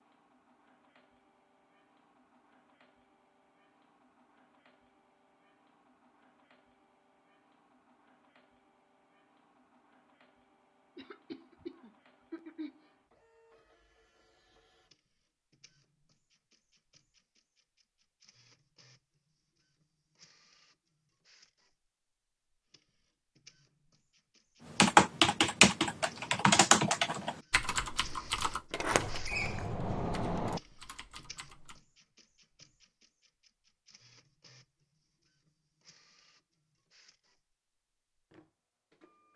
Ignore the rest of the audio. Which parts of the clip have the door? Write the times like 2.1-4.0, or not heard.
28.7-30.6.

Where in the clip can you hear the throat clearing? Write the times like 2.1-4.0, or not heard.
10.9-12.8.